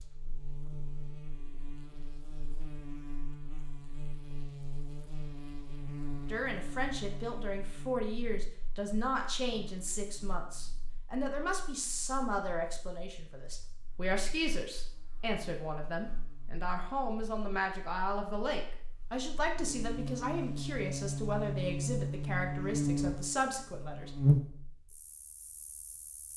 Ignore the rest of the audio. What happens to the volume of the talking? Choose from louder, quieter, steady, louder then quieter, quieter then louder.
steady.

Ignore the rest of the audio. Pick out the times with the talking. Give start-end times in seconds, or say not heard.
6.3-24.1.